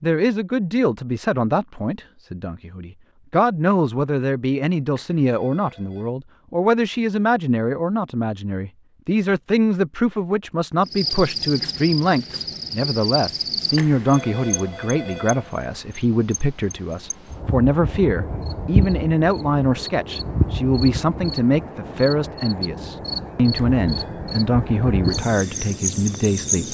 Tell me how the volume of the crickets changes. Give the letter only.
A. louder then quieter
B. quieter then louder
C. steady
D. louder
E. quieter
B.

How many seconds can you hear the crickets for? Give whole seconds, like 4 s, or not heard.
16 s.